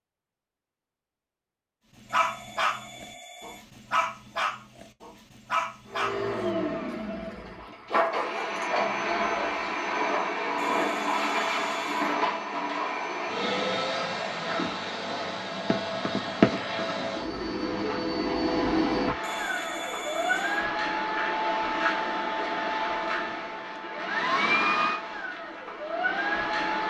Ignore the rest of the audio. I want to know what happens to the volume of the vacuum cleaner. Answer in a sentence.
The loudness of the vacuum cleaner stays about the same.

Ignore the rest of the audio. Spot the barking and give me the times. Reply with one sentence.
The barking can be heard from 2.1 to 7.0 s and from 7.7 to 9.4 s.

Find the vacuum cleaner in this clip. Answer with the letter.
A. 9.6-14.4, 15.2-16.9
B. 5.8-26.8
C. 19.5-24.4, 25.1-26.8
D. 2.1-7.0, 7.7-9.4
B.